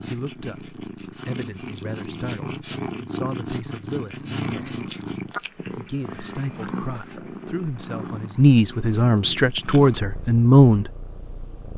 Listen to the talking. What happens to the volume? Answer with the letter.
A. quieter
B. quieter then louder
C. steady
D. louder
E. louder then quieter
D.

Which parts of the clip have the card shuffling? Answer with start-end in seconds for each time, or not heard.
not heard.